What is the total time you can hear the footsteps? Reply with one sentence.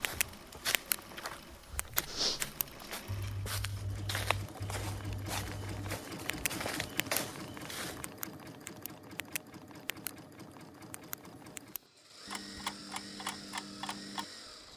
You can hear the footsteps for 8 seconds altogether.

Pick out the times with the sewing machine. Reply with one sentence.
You can hear the sewing machine from 0.0 to 14.7 s.